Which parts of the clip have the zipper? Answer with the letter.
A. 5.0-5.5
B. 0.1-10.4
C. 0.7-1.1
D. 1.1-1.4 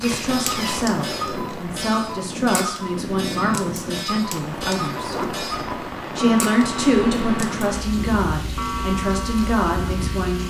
A.